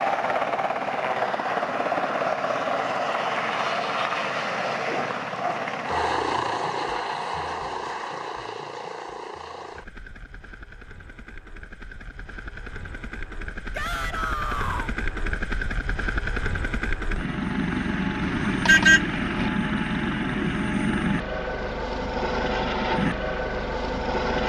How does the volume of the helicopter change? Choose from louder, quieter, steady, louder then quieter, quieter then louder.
quieter then louder.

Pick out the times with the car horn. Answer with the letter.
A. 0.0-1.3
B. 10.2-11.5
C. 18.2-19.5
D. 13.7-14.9
C.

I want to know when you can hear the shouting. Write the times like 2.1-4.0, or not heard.
13.7-14.9.